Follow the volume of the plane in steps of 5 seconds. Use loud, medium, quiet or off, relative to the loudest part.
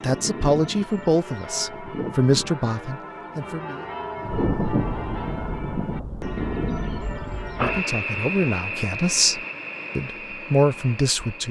off, loud, medium.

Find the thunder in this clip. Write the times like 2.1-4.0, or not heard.
4.2-7.8.